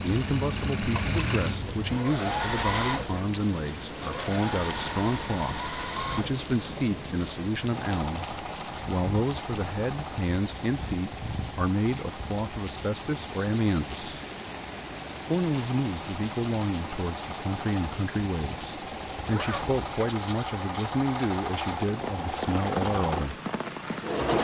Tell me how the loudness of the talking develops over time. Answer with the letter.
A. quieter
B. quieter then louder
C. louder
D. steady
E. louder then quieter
D.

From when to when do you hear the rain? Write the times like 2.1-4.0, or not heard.
0.0-24.4.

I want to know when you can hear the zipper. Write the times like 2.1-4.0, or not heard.
19.2-19.8.